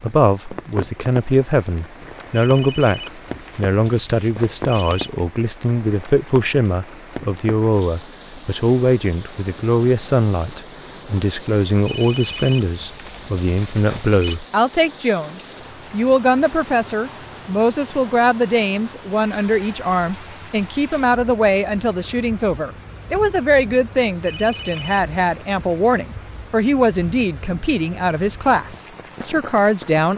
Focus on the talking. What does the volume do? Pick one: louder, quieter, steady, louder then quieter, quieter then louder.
steady.